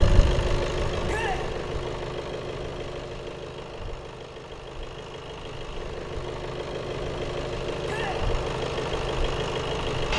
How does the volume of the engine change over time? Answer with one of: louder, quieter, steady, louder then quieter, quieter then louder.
quieter then louder.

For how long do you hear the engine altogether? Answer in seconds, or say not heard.
10 s.